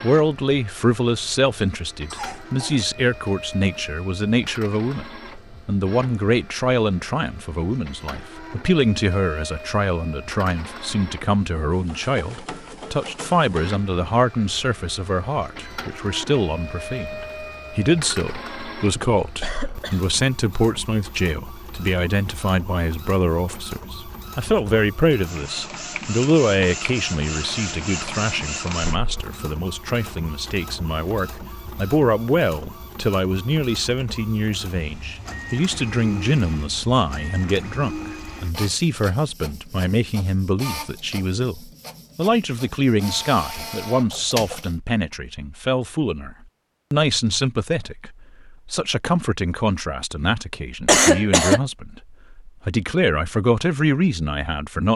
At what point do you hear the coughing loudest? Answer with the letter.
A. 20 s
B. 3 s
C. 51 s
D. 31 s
C.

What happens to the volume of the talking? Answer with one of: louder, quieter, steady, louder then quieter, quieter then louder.
steady.